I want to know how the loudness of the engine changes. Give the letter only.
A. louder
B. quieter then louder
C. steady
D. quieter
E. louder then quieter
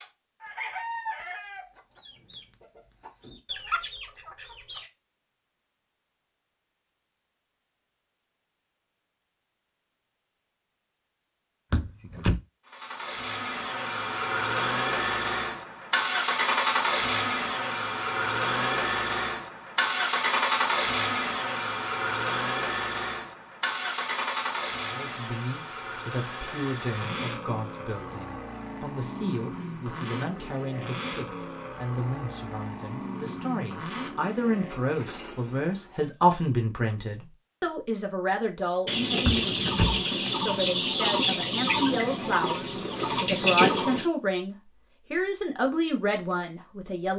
D.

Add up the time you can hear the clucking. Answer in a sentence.
The clucking can be heard for 10 seconds in total.